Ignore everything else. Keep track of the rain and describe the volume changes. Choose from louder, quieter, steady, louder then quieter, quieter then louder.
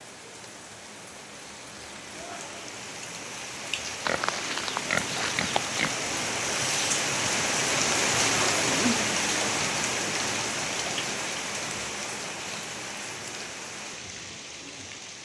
louder then quieter.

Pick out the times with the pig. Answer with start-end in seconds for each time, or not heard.
4.0-6.0.